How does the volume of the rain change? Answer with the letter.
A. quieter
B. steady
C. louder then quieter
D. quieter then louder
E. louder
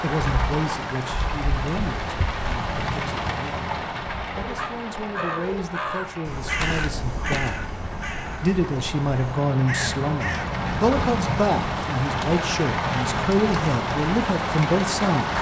D.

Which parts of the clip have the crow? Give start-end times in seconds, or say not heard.
4.4-10.5.